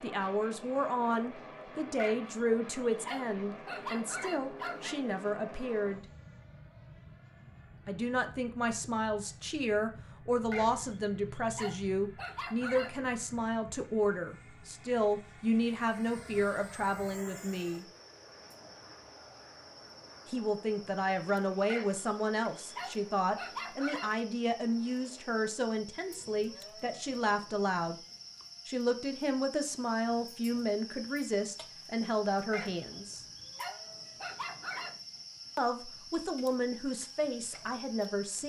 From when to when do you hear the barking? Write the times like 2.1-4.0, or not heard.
1.9-5.0, 10.5-13.2, 21.7-24.1, 32.5-35.0.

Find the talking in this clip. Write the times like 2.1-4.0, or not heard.
0.0-6.0, 7.8-17.9, 20.2-27.9, 28.6-33.2, 35.5-38.4.